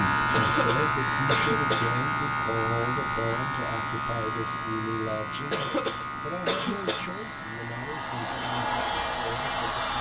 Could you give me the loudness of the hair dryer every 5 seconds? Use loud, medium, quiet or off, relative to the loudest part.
off, loud.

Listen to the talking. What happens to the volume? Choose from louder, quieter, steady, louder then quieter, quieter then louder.
quieter.